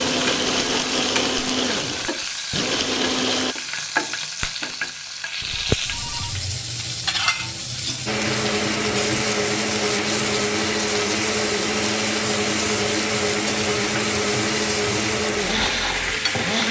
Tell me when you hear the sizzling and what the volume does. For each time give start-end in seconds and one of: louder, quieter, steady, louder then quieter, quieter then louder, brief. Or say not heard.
0.0-16.6 steady.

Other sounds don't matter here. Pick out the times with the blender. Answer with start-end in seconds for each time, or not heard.
0.0-3.5, 8.1-16.6.